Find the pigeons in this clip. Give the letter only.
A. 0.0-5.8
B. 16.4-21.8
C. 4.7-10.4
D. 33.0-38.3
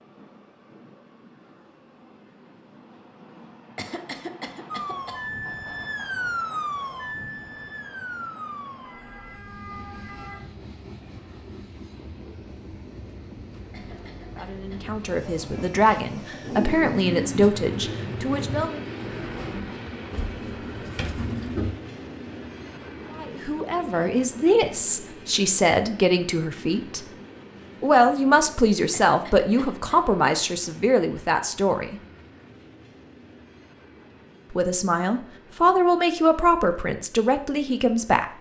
B.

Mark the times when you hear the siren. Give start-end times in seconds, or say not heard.
4.7-10.4.